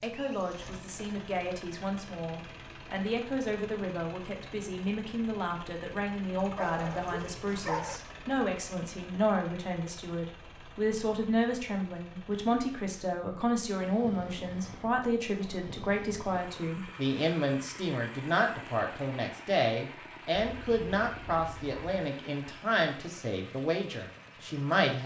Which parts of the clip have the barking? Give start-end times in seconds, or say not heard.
6.5-8.0, 20.4-22.1.